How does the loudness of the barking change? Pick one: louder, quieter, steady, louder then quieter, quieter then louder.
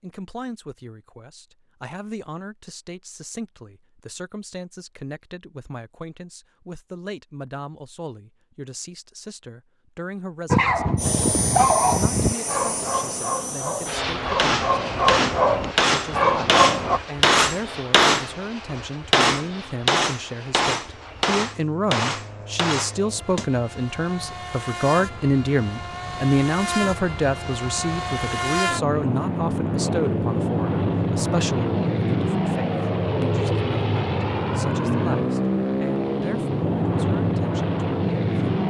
quieter then louder.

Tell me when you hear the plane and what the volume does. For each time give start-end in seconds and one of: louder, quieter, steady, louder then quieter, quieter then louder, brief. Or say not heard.
10.9-38.6 quieter then louder.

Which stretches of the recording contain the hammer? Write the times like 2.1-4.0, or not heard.
14.3-23.5.